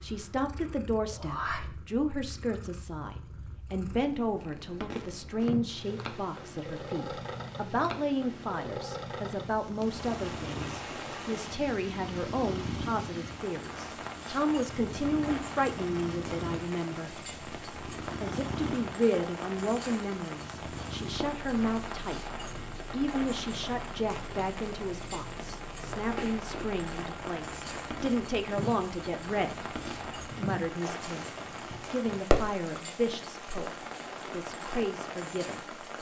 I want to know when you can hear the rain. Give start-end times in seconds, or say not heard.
9.8-35.9.